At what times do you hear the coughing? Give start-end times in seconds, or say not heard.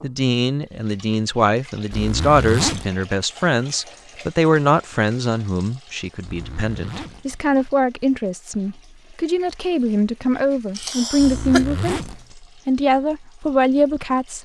10.8-11.7.